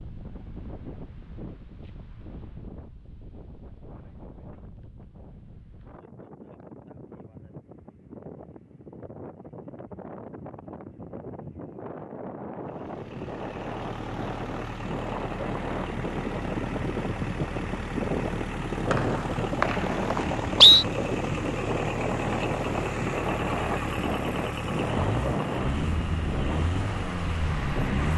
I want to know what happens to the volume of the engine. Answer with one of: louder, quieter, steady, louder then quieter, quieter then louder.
louder.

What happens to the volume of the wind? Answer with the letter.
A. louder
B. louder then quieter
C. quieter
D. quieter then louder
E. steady
A.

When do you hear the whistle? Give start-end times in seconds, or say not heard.
18.9-20.9.